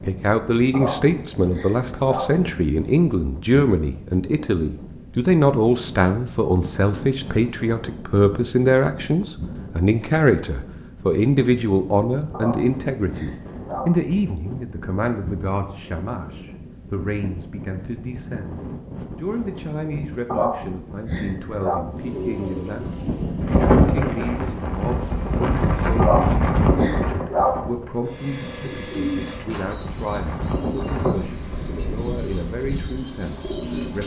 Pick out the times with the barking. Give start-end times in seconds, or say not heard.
0.7-2.5, 12.3-14.1, 20.3-21.9, 25.9-27.7.